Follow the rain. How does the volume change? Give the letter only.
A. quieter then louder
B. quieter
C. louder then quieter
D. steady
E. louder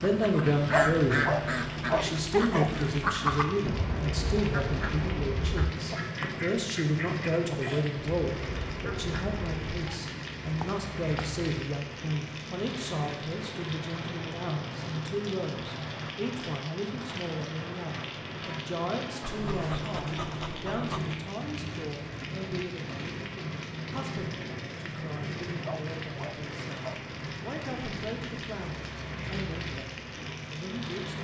D.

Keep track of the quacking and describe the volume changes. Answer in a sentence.
The volume of the quacking goes down.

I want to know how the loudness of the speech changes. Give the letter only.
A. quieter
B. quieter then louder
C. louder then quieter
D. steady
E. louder
A.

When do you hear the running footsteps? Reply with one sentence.
The running footsteps can't be heard in this clip.